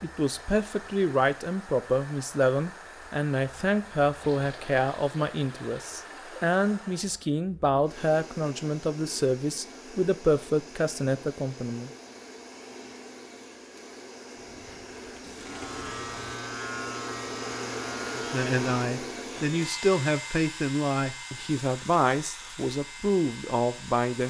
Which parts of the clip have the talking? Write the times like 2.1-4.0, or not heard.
0.0-11.9, 18.1-24.2.